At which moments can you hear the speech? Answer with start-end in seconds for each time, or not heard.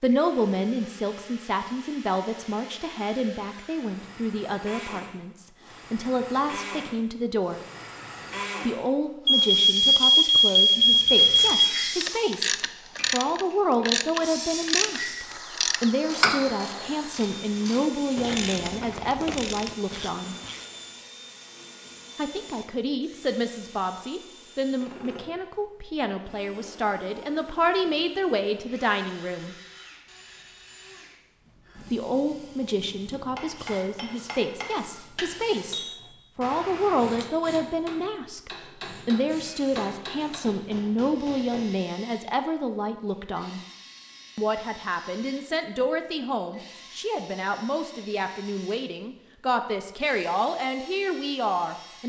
0.0-7.6, 8.7-20.4, 22.1-29.6, 31.9-43.6, 44.4-52.0.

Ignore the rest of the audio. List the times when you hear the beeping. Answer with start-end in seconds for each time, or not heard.
9.2-11.8.